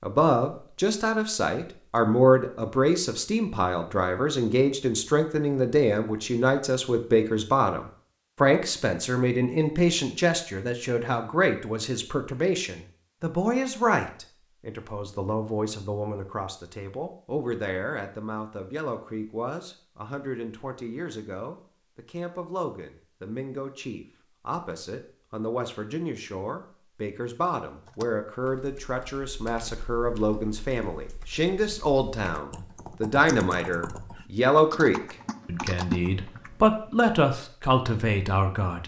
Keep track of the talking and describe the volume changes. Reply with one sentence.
The loudness of the talking goes down, then up.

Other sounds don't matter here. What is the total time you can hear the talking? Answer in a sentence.
You can hear the talking for 39 seconds altogether.